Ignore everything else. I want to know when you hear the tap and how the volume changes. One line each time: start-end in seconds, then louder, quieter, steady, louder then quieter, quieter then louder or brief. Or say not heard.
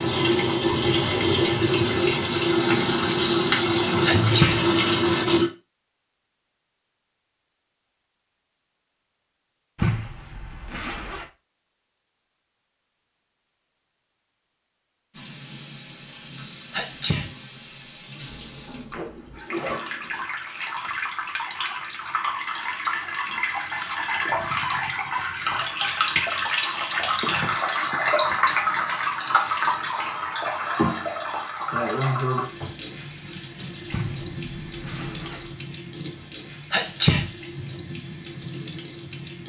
0.0-5.5 steady
15.1-39.4 louder then quieter.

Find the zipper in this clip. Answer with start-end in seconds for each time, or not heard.
9.8-11.3, 18.9-20.2, 33.9-35.6.